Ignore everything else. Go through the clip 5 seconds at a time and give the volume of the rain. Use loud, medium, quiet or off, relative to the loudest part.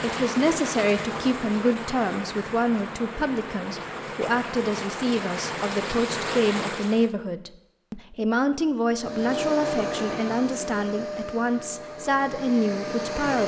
loud, loud, off.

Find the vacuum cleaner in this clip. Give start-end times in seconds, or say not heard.
8.9-13.4.